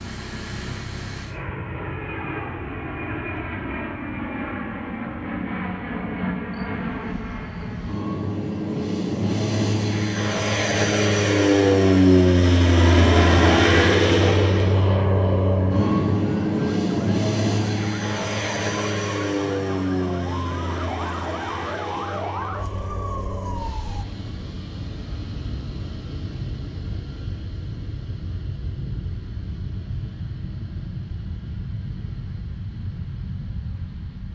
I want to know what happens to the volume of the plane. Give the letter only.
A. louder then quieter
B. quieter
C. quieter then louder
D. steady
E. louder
A.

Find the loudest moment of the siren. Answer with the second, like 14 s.
22 s.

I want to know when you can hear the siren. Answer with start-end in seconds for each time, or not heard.
16.2-24.1.